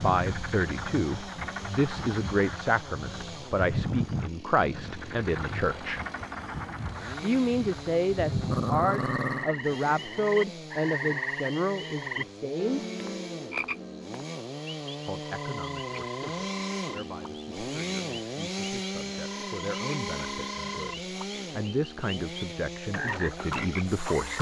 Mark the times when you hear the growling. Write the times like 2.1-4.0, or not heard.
8.5-9.5.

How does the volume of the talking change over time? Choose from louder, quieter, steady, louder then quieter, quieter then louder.
quieter then louder.